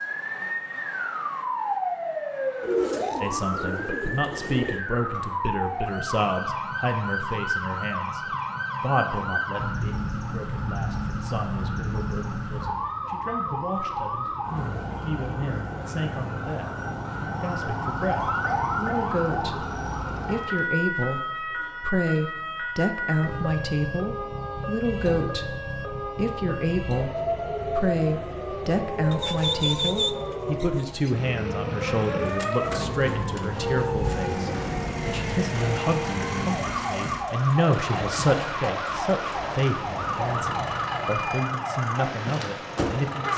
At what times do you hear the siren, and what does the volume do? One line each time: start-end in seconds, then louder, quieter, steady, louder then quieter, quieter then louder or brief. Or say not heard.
0.0-43.3 steady.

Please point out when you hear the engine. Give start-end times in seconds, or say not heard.
31.1-43.3.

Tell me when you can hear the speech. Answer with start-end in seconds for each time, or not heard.
3.2-16.8, 17.4-43.3.